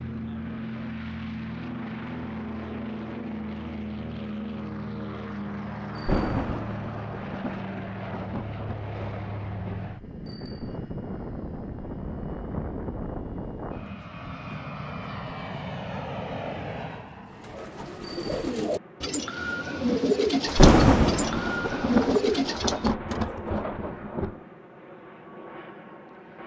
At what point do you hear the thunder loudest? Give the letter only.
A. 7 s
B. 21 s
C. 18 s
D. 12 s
B.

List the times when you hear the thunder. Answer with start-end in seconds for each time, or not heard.
6.0-9.8, 20.4-24.3.